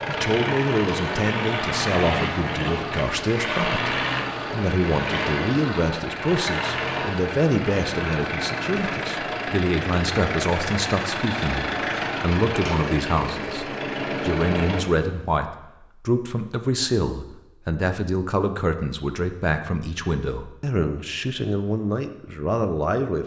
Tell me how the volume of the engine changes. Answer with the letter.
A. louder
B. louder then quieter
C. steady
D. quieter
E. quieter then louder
C.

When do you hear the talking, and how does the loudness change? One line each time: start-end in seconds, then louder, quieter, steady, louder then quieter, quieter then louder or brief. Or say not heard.
0.1-23.2 steady.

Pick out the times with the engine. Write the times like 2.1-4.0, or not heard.
0.0-14.8.